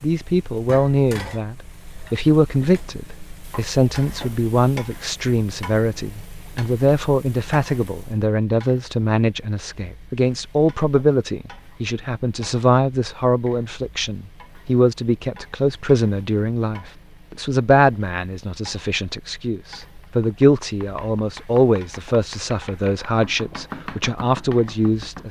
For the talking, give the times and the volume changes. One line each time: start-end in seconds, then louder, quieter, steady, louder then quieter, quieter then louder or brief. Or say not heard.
0.0-25.2 steady.